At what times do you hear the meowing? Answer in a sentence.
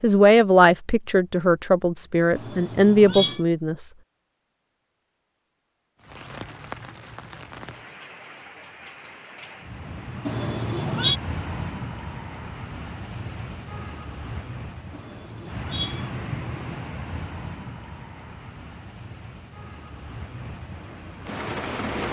You can hear the meowing from 2.4 to 3.4 s, from 10.2 to 11.2 s and from 14.9 to 16.8 s.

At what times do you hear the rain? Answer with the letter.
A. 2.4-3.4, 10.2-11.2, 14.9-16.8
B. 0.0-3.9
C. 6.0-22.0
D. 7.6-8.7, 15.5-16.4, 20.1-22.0
C.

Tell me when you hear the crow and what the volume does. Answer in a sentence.
The crow can't be heard in this clip.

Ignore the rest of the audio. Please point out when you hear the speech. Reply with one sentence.
The speech can be heard from 0.0 to 3.9 s.